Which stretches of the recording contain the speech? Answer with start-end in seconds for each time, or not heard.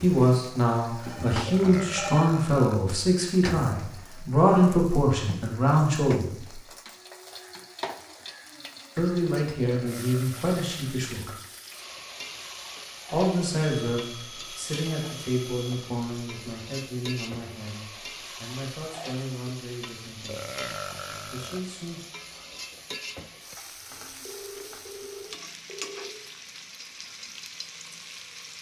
0.0-6.2, 8.9-11.3, 13.1-20.6, 21.3-22.0.